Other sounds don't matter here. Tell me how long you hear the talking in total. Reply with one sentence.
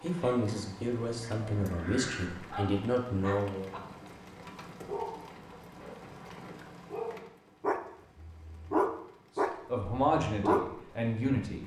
You can hear the talking for 6 seconds altogether.